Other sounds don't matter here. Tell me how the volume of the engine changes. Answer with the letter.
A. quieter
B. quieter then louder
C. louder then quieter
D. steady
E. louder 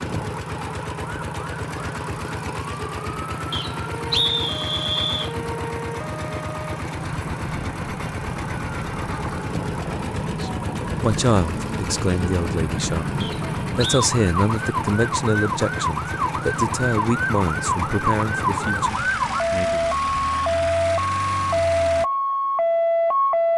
D.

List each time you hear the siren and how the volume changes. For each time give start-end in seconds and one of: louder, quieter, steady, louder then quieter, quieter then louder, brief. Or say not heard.
0.1-23.5 louder.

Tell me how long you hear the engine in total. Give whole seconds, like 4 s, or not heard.
22 s.